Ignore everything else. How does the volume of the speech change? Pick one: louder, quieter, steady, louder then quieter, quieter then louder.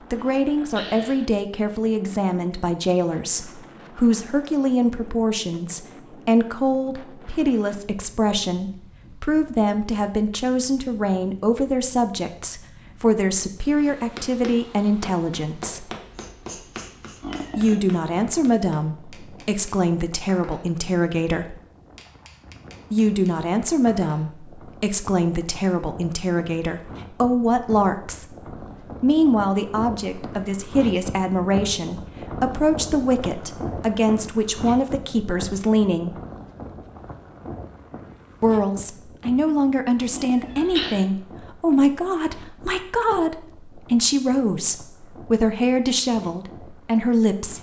steady.